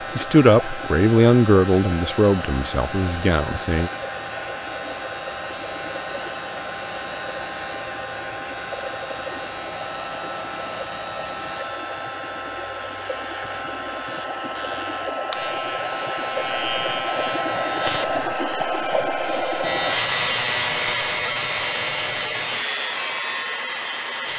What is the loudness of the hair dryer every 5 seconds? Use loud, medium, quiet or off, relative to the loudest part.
medium, medium, medium, loud, loud.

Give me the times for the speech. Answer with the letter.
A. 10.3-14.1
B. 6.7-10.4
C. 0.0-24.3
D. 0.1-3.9
D.